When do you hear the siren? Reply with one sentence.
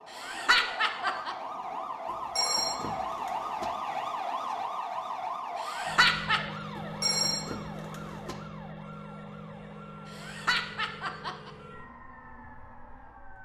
You can hear the siren from 0.0 to 13.3 s.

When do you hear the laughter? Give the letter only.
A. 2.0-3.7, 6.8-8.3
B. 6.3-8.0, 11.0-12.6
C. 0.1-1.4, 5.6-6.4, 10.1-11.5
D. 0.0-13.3
C.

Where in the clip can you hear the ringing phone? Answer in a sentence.
You can hear the ringing phone from 2.0 to 3.7 s and from 6.8 to 8.3 s.